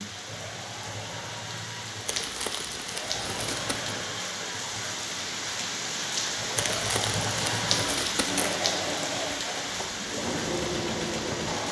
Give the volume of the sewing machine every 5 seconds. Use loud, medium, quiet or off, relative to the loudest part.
medium, loud, loud.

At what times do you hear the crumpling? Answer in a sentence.
The crumpling can be heard from 2.0 to 4.0 s and from 6.5 to 8.6 s.